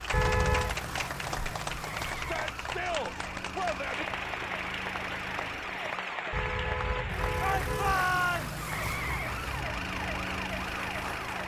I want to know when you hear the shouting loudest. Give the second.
8 s.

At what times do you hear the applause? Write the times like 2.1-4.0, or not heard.
0.0-11.4.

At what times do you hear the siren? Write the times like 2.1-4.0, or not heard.
0.0-11.4.